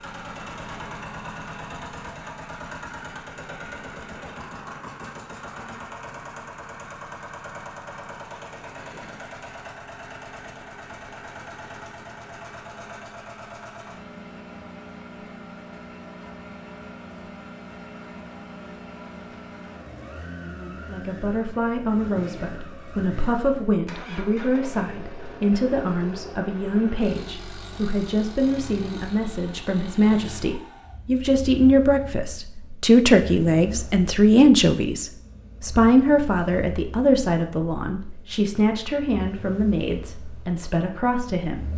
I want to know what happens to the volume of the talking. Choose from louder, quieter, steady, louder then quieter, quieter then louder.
louder then quieter.